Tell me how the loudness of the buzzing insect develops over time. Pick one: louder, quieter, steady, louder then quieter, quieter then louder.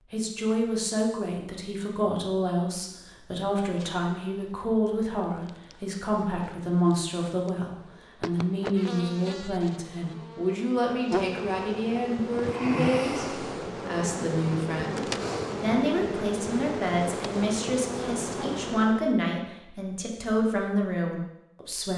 louder.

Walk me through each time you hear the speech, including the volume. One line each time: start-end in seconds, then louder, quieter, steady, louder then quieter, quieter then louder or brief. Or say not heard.
0.1-21.9 steady.